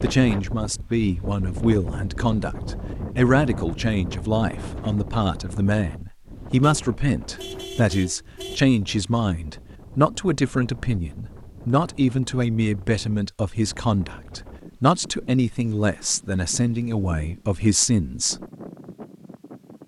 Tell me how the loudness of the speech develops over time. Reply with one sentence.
The volume of the speech stays about the same.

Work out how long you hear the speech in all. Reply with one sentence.
You can hear the speech for 18 seconds altogether.